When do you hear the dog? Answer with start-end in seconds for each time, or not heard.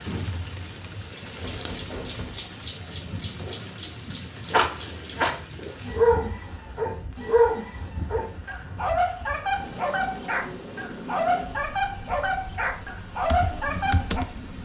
4.5-14.2.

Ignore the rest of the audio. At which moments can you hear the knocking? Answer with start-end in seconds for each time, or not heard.
1.4-2.5.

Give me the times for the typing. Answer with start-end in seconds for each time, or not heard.
13.2-14.6.